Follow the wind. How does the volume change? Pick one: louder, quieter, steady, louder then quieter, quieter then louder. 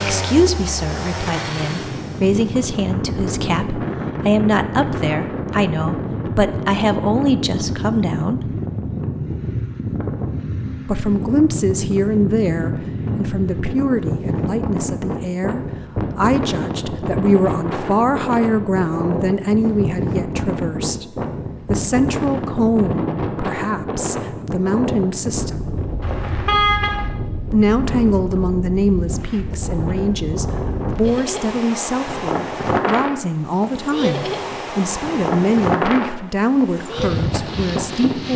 steady.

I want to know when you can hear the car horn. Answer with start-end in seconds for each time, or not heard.
26.0-27.1.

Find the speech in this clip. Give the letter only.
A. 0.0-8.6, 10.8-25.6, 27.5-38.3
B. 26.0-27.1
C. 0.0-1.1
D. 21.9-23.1
A.